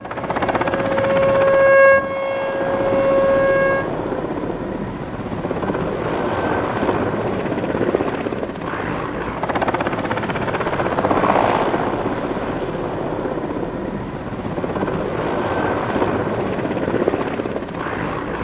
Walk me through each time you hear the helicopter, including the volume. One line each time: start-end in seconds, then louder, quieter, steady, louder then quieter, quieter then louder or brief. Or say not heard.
0.0-18.3 steady.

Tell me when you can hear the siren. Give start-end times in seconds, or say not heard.
0.0-3.9.